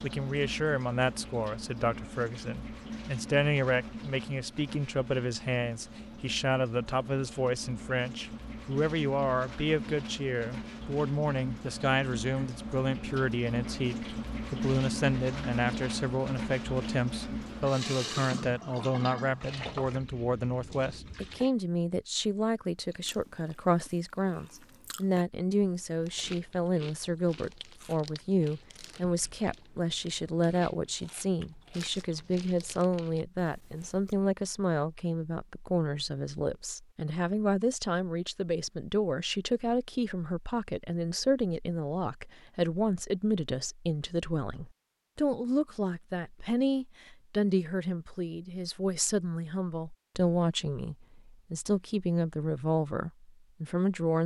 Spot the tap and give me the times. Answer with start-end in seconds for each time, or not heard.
0.0-21.5.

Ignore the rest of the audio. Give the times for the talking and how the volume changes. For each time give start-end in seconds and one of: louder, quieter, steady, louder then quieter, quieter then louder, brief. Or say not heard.
0.0-54.2 steady.